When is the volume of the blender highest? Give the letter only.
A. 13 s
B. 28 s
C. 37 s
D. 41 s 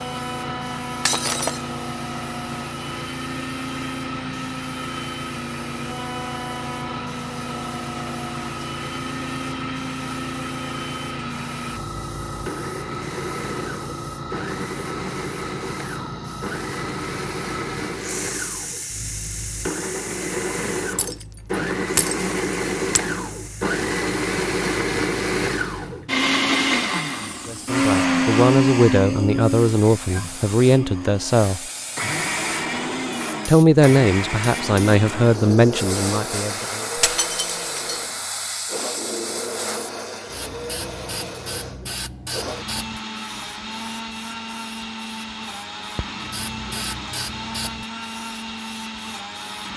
B.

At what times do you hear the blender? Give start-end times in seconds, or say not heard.
0.0-49.7.